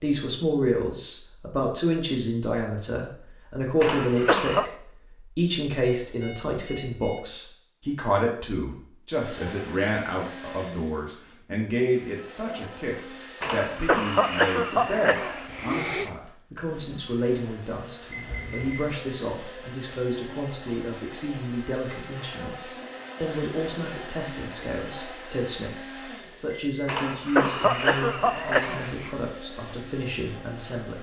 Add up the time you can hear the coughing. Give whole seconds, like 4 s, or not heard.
6 s.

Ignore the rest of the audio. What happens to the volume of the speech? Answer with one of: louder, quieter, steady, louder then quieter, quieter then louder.
quieter.